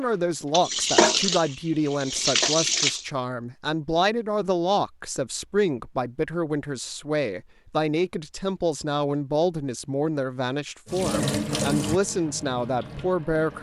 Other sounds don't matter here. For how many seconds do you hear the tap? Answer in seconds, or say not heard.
6 s.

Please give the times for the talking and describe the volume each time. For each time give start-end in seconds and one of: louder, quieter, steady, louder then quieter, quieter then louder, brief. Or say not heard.
0.0-13.5 steady.